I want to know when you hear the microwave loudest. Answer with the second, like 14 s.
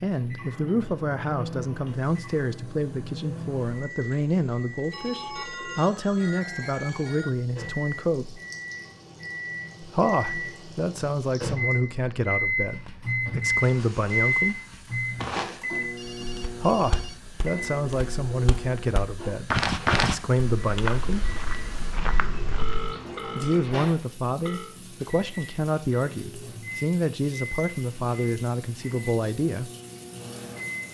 14 s.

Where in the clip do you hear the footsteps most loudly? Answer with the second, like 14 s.
20 s.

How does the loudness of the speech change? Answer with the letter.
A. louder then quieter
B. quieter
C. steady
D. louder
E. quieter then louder
C.